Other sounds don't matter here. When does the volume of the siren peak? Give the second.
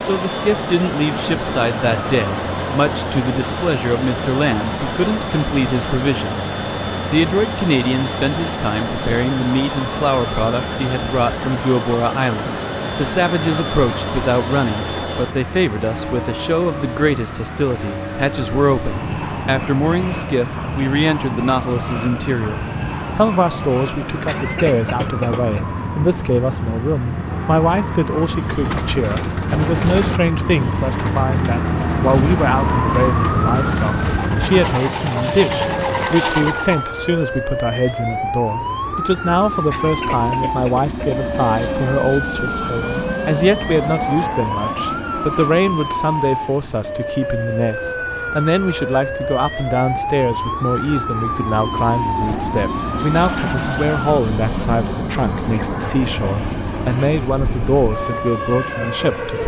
33 s.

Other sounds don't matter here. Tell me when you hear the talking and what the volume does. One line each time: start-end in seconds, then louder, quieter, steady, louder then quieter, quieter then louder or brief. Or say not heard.
0.0-59.4 steady.